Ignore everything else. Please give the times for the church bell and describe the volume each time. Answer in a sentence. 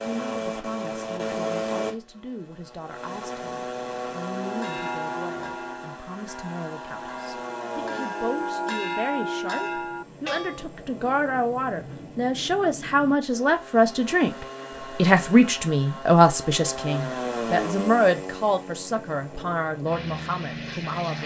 You can hear the church bell from 4.4 to 10.7 s, getting quieter then louder.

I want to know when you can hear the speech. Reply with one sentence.
You can hear the speech from 0.1 to 21.2 s.